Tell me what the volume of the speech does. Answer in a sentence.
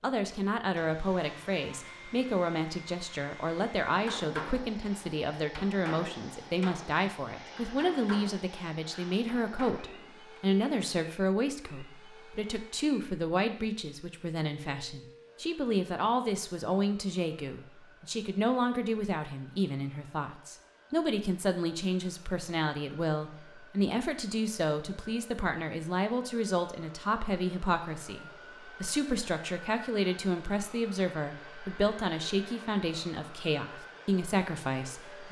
The volume of the speech stays about the same.